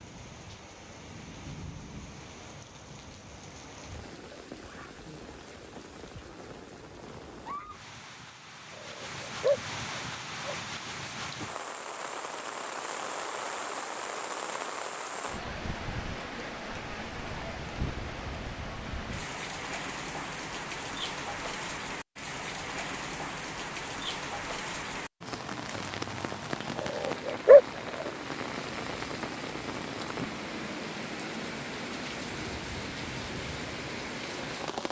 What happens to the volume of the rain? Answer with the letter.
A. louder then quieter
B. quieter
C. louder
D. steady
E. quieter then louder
C.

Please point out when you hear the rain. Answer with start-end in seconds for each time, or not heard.
0.0-34.8.